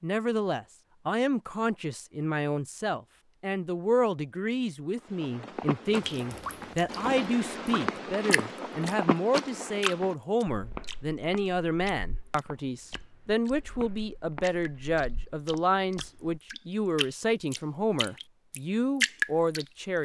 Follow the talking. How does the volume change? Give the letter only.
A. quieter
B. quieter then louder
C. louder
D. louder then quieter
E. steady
E.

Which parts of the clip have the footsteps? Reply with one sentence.
You can hear the footsteps from 5.0 to 16.4 s.